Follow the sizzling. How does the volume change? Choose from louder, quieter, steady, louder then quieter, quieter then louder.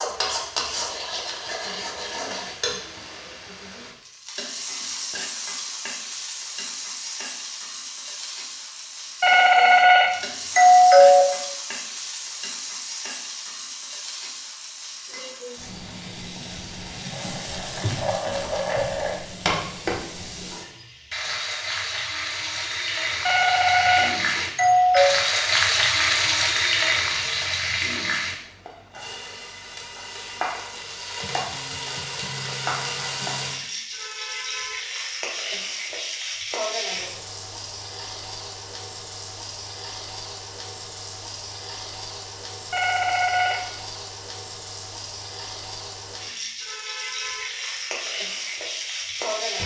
louder then quieter.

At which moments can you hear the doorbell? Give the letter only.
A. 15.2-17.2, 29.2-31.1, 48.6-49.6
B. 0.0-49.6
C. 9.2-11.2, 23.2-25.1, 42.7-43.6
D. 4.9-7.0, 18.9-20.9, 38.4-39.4
C.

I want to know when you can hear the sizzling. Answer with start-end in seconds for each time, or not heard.
0.0-49.6.